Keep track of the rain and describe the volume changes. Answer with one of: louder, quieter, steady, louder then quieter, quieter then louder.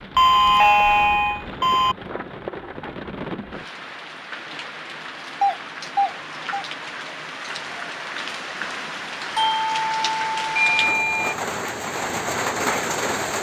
louder.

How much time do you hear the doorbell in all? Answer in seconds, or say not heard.
5 s.